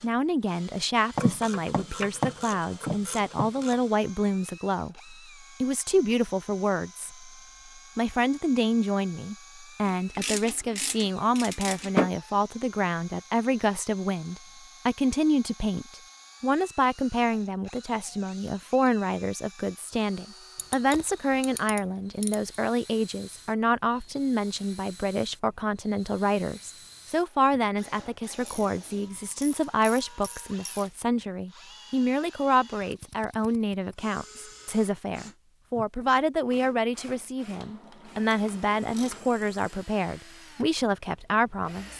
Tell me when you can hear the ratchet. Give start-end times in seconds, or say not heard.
1.1-3.8, 9.8-12.1, 20.6-22.4, 28.4-30.9, 37.5-39.4.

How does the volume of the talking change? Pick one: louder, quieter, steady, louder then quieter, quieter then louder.
steady.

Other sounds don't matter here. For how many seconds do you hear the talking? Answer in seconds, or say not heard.
41 s.